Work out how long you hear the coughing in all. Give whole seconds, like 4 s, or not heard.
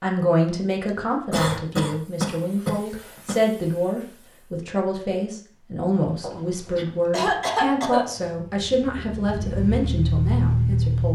4 s.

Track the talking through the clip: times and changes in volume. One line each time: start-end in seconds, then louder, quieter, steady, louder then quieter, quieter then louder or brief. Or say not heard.
0.0-11.1 steady.